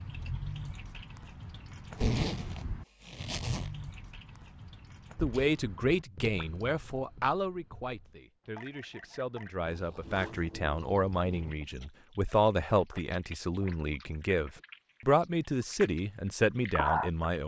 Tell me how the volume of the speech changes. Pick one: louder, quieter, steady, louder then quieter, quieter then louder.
quieter then louder.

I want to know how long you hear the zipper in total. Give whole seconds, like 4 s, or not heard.
4 s.